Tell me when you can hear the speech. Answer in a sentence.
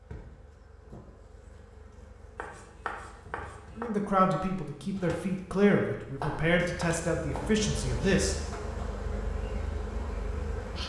The speech can be heard from 3.8 to 8.3 s.